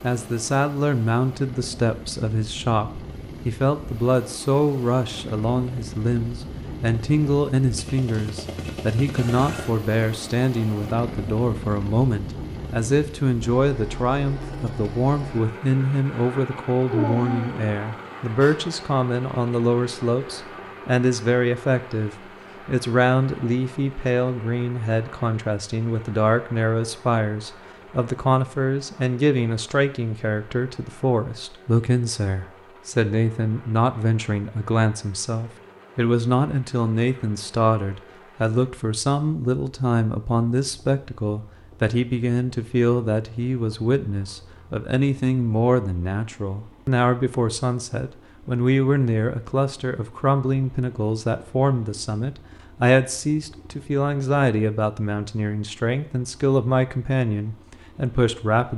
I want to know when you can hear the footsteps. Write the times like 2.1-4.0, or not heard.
not heard.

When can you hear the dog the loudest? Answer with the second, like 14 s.
17 s.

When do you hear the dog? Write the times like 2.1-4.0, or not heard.
16.9-18.6.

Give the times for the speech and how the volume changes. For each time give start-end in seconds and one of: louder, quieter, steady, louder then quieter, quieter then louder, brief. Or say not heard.
0.0-58.7 steady.